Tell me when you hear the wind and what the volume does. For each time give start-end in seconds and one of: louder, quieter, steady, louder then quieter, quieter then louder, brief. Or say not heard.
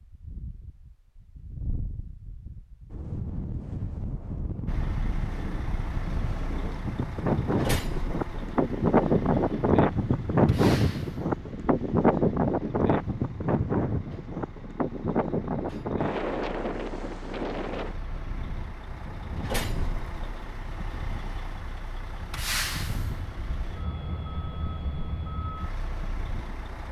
0.0-26.6 louder then quieter.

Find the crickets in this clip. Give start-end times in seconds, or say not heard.
not heard.